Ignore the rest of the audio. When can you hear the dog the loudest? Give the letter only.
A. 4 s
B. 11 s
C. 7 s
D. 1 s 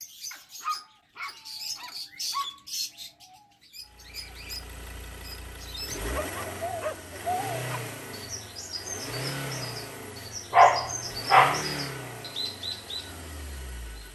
B.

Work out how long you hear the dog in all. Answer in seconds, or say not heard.
5 s.